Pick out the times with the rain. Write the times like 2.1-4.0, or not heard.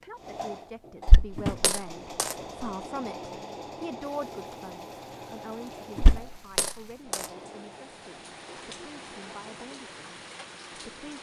4.2-11.1.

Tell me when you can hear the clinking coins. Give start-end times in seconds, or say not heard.
1.1-2.4, 6.0-7.3.